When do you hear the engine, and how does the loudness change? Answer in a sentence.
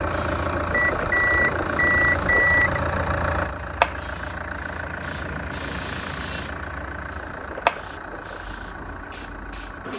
You can hear the engine from 0.0 to 9.9 s, getting quieter.